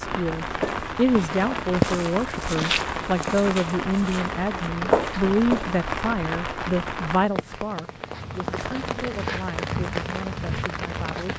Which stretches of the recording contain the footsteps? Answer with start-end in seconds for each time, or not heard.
0.5-5.8.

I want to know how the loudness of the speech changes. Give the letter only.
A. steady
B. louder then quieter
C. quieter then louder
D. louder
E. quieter
E.